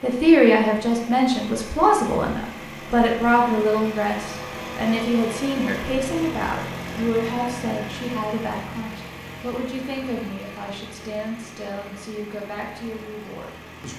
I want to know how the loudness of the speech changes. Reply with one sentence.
The volume of the speech goes down.